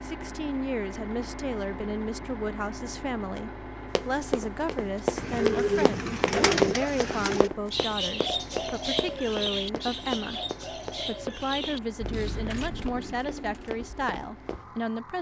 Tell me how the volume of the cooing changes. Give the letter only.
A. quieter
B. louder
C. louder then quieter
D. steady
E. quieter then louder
A.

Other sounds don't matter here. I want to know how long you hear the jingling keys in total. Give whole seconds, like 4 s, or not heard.
2 s.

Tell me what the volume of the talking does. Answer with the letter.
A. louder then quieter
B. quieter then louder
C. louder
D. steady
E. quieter
D.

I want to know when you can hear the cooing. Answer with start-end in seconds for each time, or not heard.
5.2-14.1.